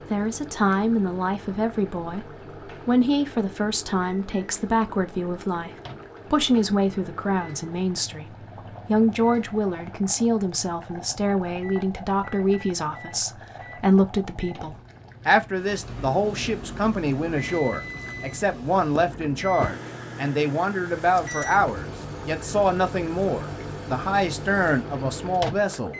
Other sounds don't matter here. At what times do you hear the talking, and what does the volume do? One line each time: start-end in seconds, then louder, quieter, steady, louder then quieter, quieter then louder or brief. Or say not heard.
0.1-25.9 steady.